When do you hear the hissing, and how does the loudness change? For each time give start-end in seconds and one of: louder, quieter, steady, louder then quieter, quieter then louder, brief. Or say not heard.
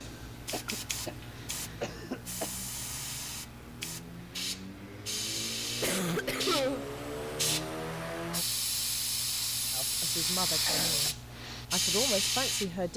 0.0-12.9 louder.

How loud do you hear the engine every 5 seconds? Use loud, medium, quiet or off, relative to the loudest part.
medium, loud, off.